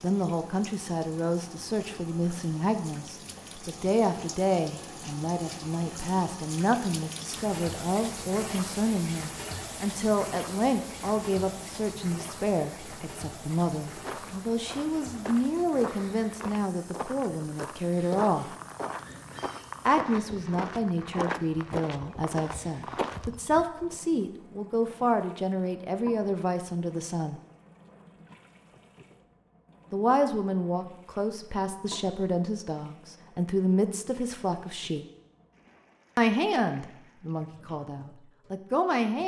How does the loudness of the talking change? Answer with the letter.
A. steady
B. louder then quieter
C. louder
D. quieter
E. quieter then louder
A.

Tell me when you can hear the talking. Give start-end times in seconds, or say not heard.
0.0-18.6, 19.9-27.4, 29.9-35.0, 36.1-39.2.